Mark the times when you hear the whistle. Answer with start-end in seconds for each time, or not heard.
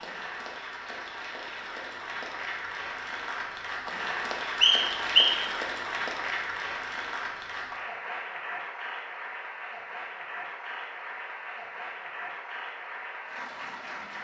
4.6-5.4.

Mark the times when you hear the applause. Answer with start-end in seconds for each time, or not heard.
0.0-14.1.